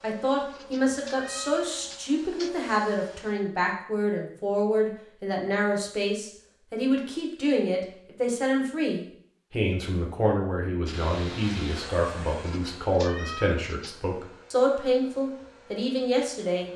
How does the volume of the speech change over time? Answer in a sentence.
The loudness of the speech stays about the same.